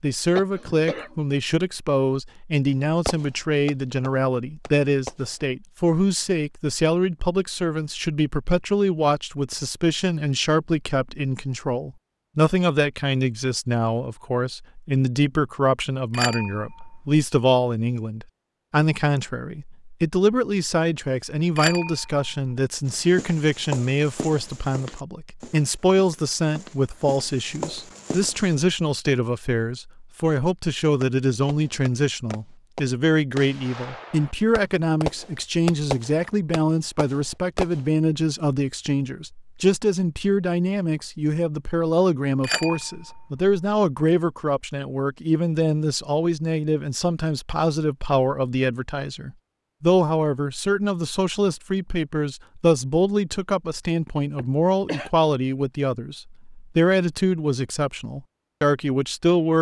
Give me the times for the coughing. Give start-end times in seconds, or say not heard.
0.3-1.1, 54.4-55.1.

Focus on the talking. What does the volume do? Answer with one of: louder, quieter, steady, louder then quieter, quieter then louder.
steady.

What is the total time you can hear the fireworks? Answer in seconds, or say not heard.
9 s.